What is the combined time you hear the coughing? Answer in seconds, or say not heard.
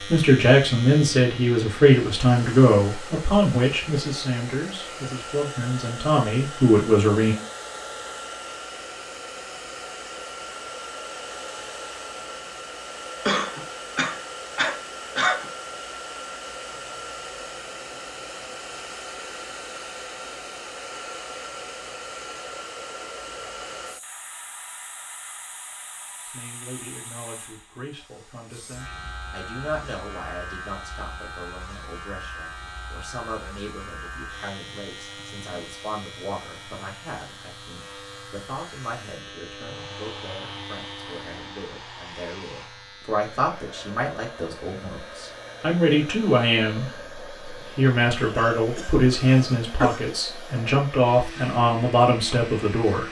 4 s.